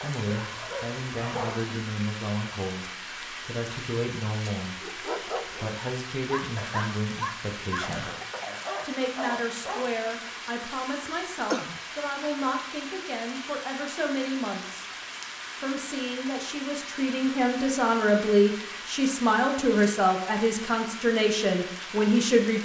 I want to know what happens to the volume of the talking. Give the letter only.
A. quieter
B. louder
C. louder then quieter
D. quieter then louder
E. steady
B.